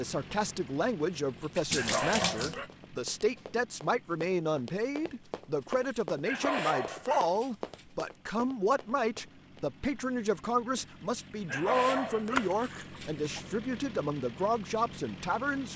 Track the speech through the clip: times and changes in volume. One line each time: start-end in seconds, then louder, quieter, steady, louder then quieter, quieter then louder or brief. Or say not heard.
0.0-15.7 steady.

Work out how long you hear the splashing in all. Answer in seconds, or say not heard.
2 s.